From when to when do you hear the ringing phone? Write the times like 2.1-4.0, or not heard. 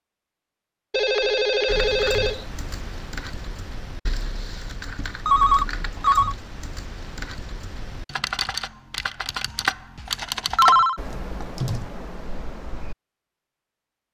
0.9-2.5, 5.2-6.3, 10.1-11.0.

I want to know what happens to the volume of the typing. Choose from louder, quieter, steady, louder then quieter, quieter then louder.
louder.